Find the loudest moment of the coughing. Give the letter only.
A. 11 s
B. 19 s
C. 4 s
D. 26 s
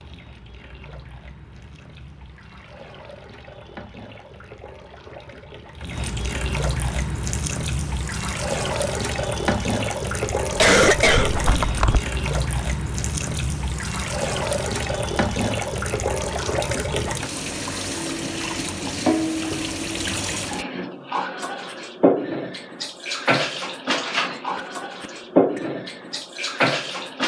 A.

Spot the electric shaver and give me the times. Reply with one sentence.
The electric shaver can't be heard in this clip.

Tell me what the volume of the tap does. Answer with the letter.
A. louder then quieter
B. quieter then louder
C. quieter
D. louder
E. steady
D.